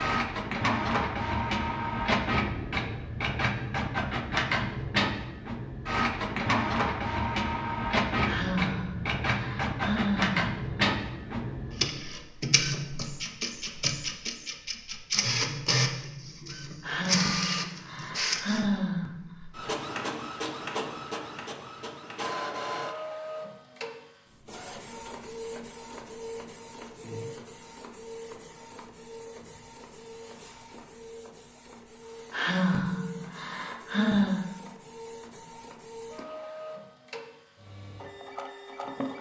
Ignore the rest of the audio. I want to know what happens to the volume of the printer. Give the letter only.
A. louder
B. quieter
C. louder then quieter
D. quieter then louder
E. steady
B.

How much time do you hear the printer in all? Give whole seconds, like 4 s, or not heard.
39 s.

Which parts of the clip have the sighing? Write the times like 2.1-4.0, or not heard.
8.2-10.9, 16.8-19.4, 32.3-34.5.